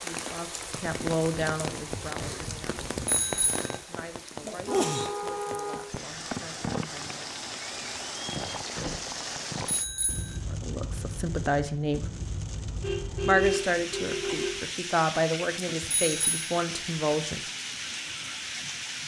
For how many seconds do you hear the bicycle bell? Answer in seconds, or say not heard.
2 s.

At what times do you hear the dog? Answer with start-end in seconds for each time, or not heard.
not heard.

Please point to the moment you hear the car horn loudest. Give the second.
13 s.